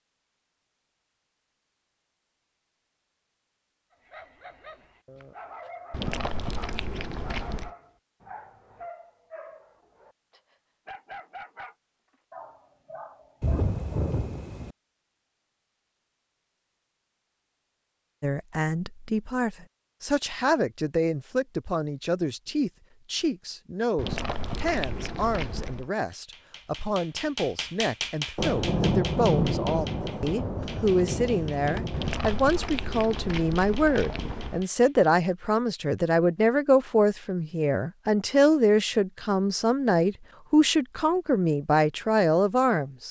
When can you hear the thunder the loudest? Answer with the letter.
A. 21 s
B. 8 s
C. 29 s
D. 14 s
C.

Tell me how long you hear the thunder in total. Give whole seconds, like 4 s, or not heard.
5 s.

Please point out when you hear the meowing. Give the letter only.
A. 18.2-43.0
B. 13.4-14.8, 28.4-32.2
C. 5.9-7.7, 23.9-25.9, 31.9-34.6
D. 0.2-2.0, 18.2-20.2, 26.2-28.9
C.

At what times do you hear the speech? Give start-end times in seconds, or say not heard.
18.2-43.0.